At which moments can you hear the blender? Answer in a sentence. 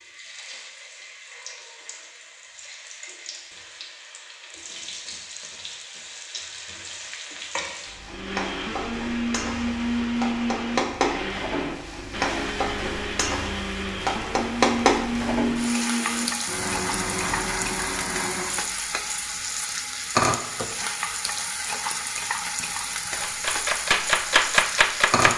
The blender can be heard from 8.1 to 18.6 s.